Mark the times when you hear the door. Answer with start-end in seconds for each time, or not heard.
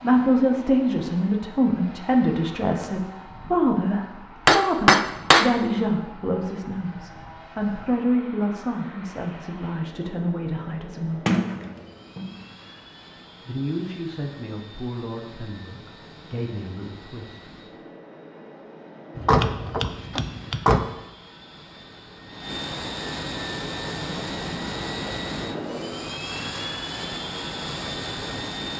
11.2-12.4, 19.2-20.8.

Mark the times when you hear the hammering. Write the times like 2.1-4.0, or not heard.
4.5-5.5, 19.1-20.6.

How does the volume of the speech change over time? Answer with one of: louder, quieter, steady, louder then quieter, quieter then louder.
quieter.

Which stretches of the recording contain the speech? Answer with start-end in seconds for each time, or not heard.
0.0-11.2, 13.4-17.6.